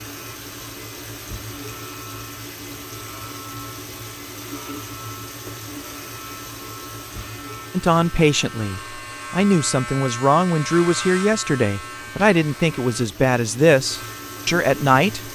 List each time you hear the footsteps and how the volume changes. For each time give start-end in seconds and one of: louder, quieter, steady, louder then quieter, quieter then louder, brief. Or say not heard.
not heard.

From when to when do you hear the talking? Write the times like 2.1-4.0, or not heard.
7.7-15.2.